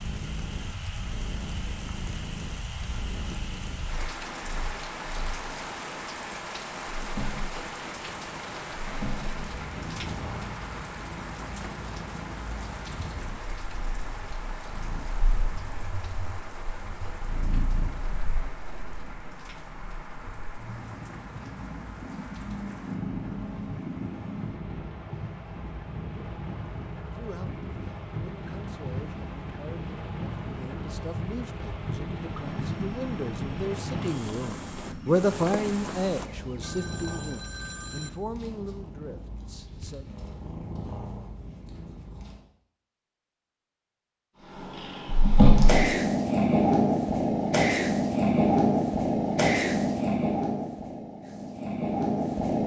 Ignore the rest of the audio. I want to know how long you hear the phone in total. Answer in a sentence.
You can hear the phone for 2 seconds altogether.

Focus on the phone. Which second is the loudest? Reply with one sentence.
The volume of the phone peaks at 38 seconds.